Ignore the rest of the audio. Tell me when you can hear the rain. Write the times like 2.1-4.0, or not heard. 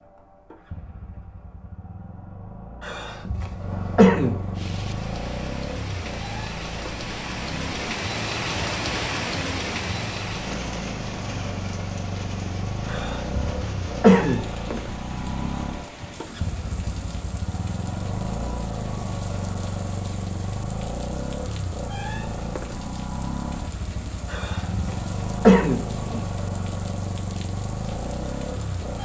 4.5-28.9.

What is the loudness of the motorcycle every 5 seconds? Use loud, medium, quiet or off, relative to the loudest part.
medium, loud, loud, loud, loud, loud.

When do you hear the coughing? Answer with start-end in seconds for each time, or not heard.
2.8-4.3, 12.9-14.8, 24.3-26.2.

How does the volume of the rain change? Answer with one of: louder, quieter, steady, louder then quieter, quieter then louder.
quieter.